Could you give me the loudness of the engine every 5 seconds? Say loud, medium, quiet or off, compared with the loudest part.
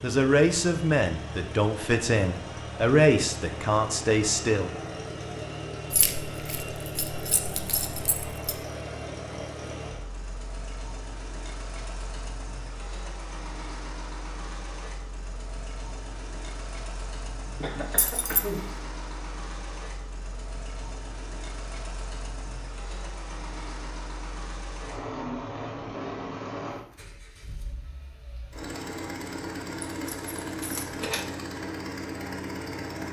loud, loud, medium, medium, medium, loud, loud.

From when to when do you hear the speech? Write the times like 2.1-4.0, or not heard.
0.0-4.7.